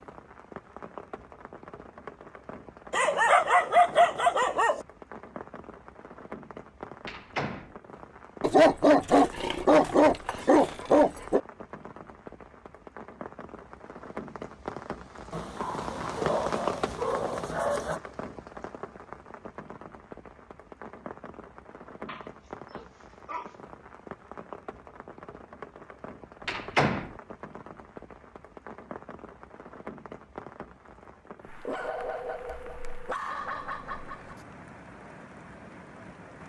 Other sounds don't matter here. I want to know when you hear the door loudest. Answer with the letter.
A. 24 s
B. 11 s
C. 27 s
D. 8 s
C.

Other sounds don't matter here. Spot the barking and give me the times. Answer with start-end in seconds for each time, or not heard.
2.9-4.8, 8.4-11.4, 15.3-18.0, 22.1-23.6, 31.4-34.5.